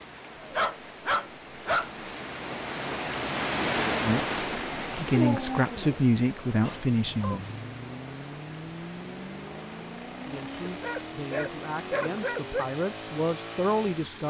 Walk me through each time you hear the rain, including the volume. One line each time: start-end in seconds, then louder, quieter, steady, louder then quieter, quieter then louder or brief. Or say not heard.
0.0-14.2 louder then quieter.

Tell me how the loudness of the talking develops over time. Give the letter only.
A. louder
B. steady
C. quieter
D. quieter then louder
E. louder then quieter
D.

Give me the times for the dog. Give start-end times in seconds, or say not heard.
0.4-1.9, 5.1-7.4, 10.7-12.7.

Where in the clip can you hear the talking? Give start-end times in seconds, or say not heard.
4.0-7.5, 10.2-14.2.